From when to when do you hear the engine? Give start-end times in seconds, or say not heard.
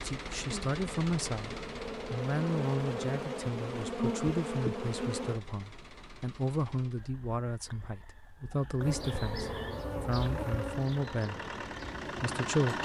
0.0-7.0, 10.1-12.7.